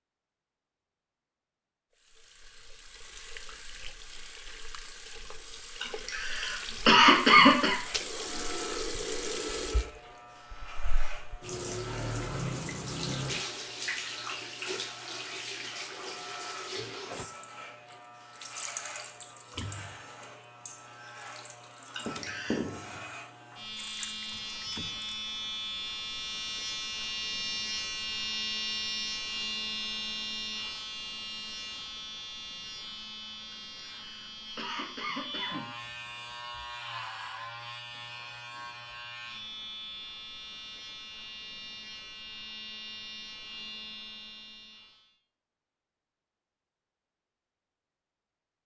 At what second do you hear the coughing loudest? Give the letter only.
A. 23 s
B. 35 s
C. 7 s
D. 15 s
C.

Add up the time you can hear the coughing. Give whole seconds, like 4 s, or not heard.
5 s.